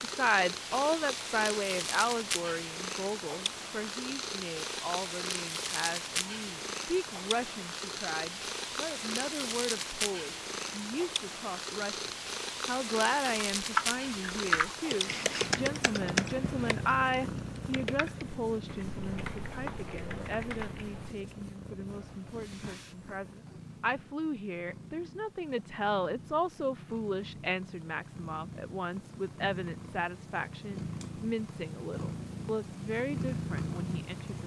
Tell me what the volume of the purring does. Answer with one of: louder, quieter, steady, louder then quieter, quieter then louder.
quieter then louder.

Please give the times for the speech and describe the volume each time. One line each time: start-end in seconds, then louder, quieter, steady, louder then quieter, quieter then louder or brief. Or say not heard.
0.0-34.4 steady.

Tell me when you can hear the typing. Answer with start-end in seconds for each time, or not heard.
13.6-21.1.